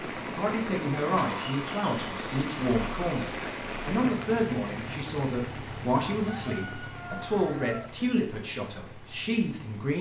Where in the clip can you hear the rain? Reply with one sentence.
You can hear the rain from 0.0 to 9.9 s.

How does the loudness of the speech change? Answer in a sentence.
The loudness of the speech stays about the same.